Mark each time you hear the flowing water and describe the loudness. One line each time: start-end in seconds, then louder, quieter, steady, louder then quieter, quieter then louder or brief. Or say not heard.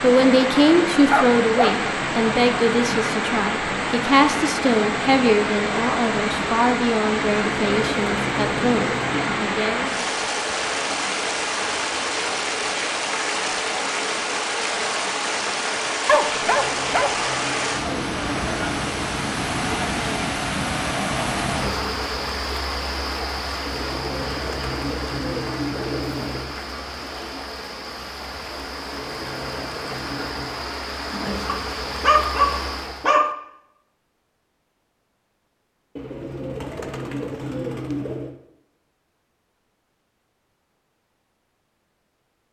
0.0-33.1 quieter.